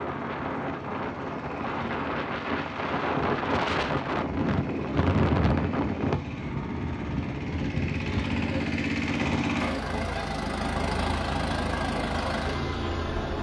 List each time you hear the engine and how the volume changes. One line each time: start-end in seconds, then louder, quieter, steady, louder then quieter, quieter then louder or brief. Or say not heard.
0.0-13.3 louder.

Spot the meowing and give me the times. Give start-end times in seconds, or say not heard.
not heard.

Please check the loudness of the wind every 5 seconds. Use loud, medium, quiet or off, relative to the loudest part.
loud, loud, off.